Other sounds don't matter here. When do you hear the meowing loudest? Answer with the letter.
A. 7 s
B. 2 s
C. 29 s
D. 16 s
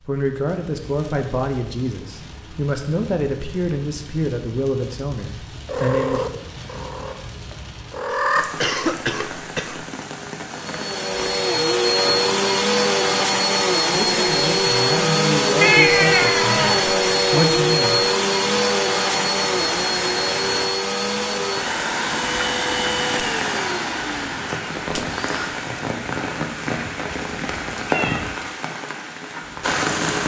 D.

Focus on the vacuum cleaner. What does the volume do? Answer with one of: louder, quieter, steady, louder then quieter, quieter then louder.
quieter.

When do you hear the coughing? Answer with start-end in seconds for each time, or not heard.
8.1-9.8.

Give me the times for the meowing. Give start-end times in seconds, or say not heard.
5.7-8.4, 15.6-16.9, 27.9-28.4.